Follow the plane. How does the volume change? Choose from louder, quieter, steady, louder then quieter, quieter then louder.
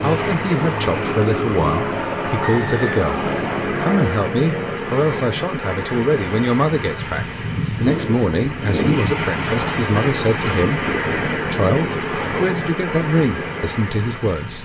steady.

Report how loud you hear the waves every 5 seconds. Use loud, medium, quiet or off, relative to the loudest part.
medium, loud, loud.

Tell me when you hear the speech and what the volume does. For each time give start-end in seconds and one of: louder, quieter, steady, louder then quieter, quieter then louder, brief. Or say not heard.
0.0-14.6 steady.